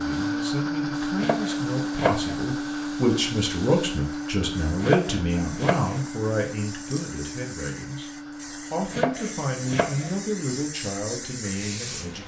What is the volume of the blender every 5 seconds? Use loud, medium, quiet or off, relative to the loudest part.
loud, medium, quiet.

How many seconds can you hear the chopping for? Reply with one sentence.
The chopping can be heard for 4 seconds in total.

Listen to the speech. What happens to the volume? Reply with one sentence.
The loudness of the speech goes up, then down.